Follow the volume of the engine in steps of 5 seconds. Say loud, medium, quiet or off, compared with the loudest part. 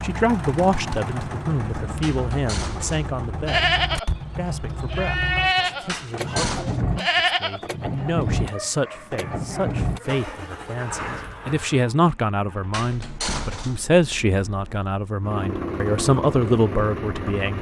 loud, loud, medium, loud.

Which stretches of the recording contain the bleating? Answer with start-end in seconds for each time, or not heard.
3.5-8.1.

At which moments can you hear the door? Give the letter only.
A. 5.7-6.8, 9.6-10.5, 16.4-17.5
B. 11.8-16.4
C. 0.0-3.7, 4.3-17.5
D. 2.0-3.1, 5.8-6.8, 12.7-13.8
D.